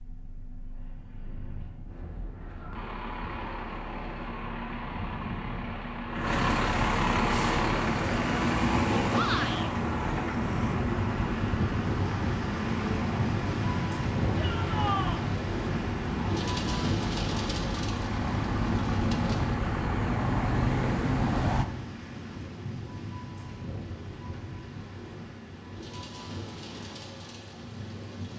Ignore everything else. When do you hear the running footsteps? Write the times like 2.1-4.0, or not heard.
not heard.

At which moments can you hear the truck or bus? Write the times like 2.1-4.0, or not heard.
0.0-21.6.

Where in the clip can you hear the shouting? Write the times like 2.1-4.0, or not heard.
9.1-9.7, 14.3-15.2.